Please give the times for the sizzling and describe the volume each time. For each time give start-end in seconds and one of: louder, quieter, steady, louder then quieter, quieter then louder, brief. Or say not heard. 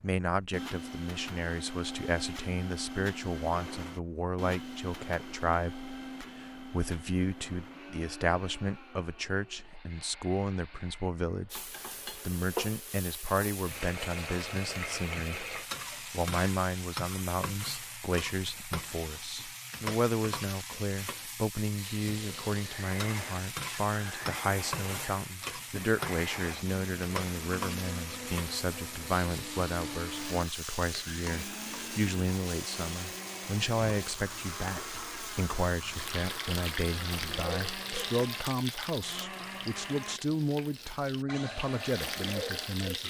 11.5-43.0 steady.